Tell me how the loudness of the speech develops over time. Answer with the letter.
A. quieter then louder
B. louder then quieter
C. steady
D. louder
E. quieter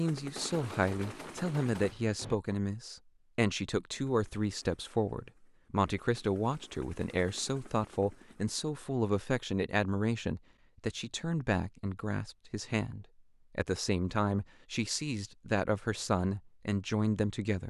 C.